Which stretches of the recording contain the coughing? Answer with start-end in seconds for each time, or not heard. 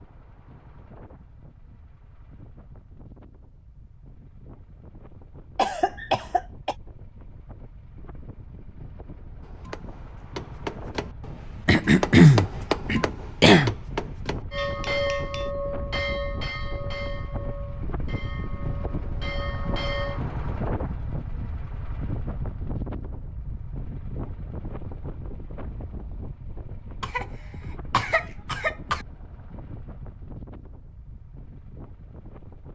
5.5-6.8, 11.7-13.8, 27.0-29.1.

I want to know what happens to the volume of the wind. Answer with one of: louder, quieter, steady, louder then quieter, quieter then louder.
louder then quieter.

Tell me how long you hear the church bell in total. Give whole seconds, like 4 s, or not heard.
6 s.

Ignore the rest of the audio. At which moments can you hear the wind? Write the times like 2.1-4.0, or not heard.
0.0-32.7.